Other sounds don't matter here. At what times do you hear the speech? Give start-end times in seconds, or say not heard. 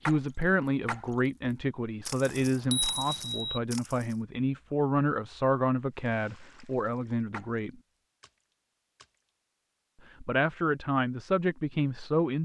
0.0-7.8, 10.2-12.3.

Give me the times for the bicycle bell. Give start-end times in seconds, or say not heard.
2.2-3.6.